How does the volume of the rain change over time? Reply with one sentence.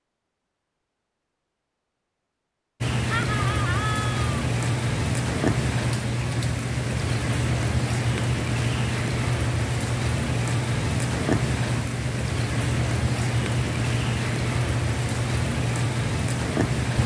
The loudness of the rain stays about the same.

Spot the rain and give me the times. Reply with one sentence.
The rain can be heard from 2.8 to 17.0 s.